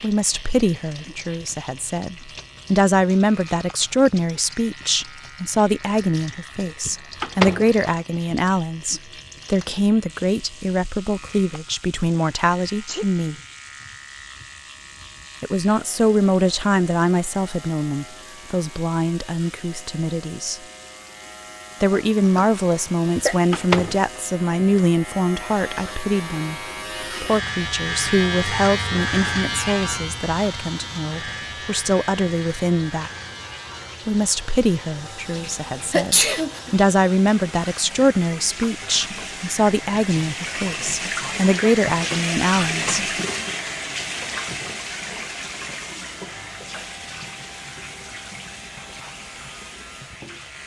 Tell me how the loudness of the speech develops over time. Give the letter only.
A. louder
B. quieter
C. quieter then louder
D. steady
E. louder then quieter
D.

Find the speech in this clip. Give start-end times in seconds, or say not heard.
0.0-13.3, 15.4-20.6, 21.8-26.6, 27.2-33.1, 34.0-43.0.